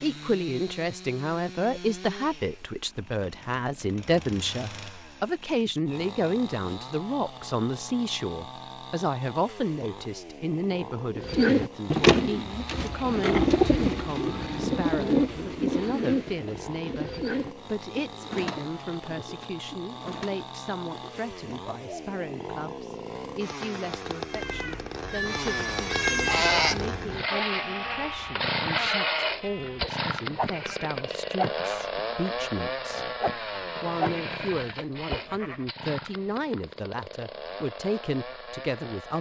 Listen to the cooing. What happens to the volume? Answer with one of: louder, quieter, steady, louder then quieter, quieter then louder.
quieter.